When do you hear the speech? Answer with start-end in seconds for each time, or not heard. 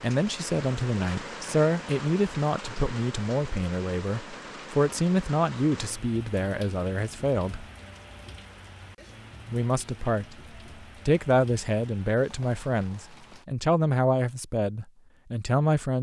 0.0-7.7, 9.4-10.3, 11.1-15.9.